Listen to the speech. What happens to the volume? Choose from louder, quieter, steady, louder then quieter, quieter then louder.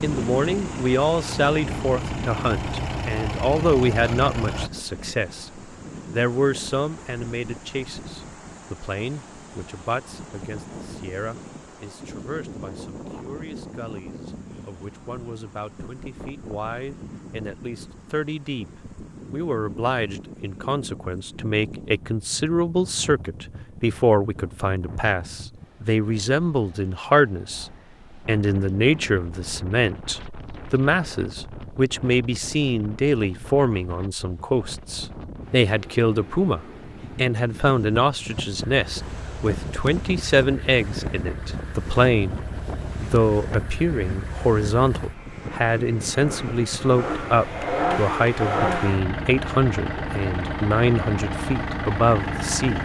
quieter then louder.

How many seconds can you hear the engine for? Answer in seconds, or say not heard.
19 s.